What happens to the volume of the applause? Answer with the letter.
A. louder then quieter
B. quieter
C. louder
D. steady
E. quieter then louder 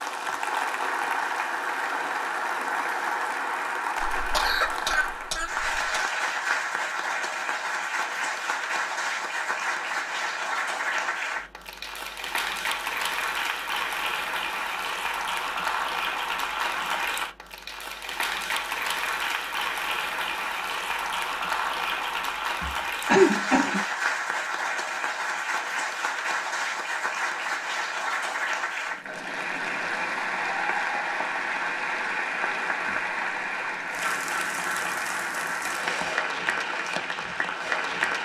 D.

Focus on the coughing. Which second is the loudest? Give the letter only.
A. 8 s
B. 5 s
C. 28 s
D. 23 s
D.